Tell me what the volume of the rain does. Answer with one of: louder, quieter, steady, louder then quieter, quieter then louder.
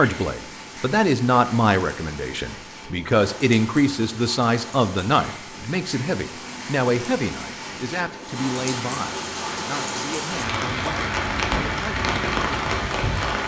louder.